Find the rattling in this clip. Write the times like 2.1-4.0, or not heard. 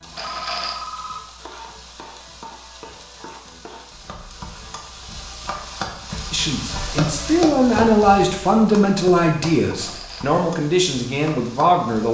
0.1-0.8, 9.7-10.2.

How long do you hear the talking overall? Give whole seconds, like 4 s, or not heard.
6 s.